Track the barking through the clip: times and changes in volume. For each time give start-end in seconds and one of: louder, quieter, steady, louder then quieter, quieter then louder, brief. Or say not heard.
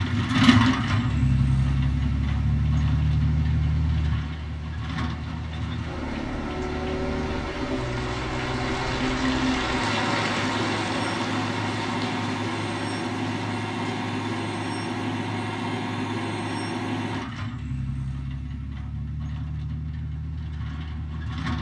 not heard.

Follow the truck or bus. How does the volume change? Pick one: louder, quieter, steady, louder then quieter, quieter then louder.
quieter.